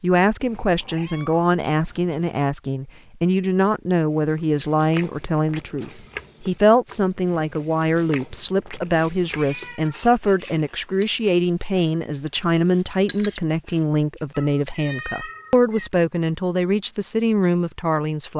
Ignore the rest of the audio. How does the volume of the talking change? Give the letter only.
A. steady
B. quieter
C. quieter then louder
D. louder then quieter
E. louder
A.